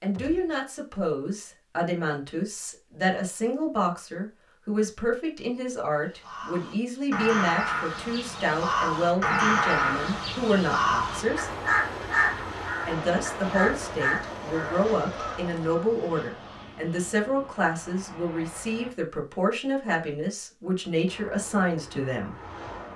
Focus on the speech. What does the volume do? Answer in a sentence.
The loudness of the speech stays about the same.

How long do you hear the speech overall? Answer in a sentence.
The speech can be heard for 21 seconds in total.